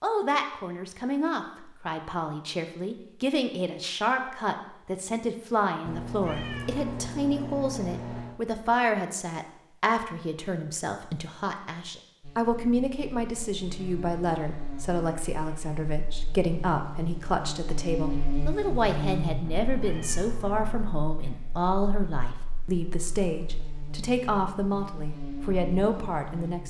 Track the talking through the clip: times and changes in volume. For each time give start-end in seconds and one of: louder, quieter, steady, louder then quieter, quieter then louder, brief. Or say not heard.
0.0-26.6 steady.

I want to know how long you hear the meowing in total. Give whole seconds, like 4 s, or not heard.
4 s.